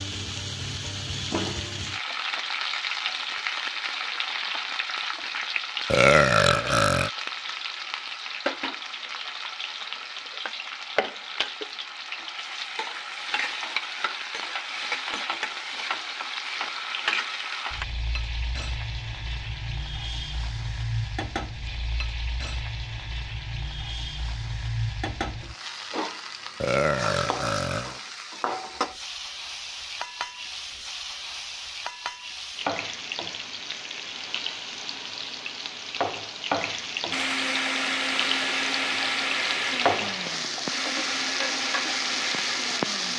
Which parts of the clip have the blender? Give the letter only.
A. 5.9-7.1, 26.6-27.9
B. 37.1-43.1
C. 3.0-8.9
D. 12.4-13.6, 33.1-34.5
B.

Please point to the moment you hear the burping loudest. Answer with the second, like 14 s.
6 s.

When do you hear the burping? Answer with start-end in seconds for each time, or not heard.
5.9-7.1, 26.6-27.9.